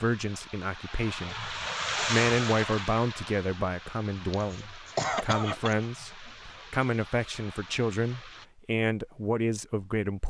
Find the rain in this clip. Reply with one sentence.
The rain can be heard from 0.0 to 8.5 s.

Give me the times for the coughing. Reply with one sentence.
The coughing can be heard from 4.1 to 6.3 s.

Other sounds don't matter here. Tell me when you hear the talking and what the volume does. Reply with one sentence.
You can hear the talking from 0.0 to 10.2 s, at a steady volume.